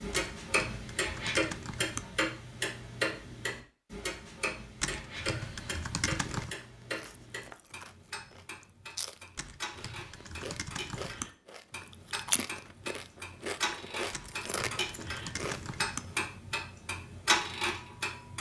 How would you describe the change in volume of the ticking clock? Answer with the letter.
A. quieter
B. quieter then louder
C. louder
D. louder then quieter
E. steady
B.